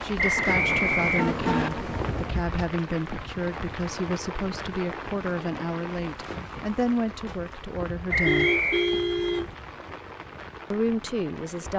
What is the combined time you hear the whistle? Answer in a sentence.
The whistle can be heard for 2 seconds in total.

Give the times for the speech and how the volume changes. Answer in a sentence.
The speech can be heard from 0.0 to 8.5 s, at a steady volume; and briefly from 10.7 to 11.7 s.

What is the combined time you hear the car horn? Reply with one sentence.
The car horn can be heard for 3 seconds in total.